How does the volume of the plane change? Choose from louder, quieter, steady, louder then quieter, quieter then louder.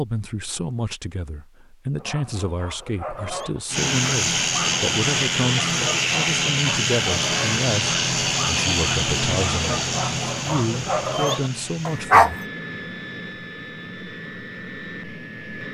quieter.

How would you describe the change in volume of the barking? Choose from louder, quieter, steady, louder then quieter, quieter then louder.
louder.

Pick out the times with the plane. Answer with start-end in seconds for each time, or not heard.
3.7-15.6.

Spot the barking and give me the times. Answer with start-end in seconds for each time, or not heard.
1.9-12.4.